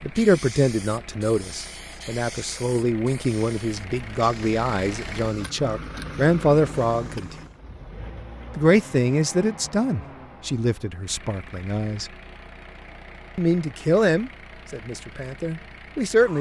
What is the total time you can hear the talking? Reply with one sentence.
You can hear the talking for 14 seconds altogether.